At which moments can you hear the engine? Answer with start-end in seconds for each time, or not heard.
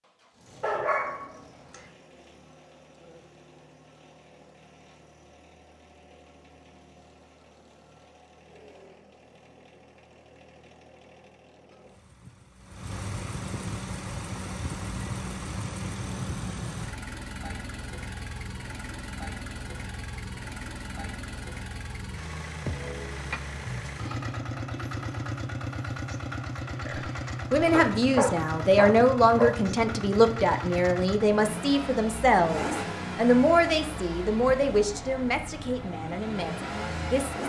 0.0-37.4.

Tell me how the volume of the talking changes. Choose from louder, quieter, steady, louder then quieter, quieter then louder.
quieter.